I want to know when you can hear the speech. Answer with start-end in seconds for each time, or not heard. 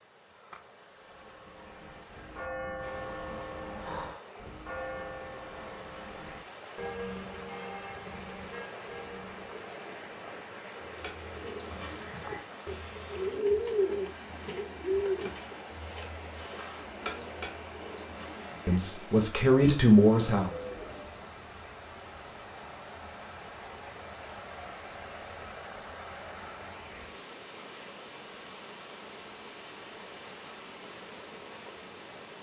18.6-20.5.